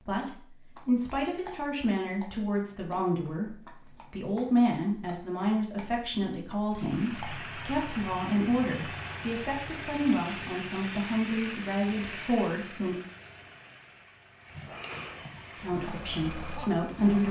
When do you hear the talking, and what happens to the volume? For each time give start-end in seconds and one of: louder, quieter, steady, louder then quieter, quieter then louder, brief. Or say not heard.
0.1-12.9 steady
15.6-17.2 brief.